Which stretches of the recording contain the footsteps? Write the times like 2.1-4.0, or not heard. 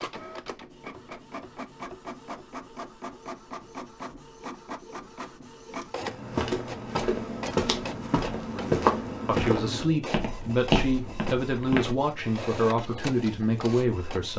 6.0-11.9.